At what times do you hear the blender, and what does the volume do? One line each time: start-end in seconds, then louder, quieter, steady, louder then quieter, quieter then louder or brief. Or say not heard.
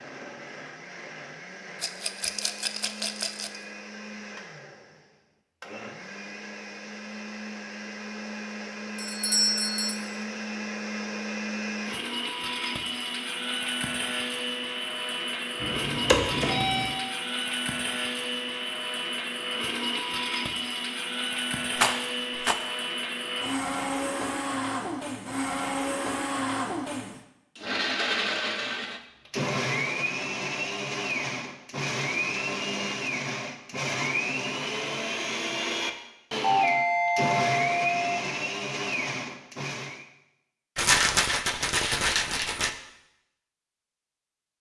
0.0-40.0 louder.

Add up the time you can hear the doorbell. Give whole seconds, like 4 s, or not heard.
4 s.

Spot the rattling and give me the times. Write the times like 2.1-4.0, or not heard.
1.8-3.6, 21.8-22.6, 40.8-42.8.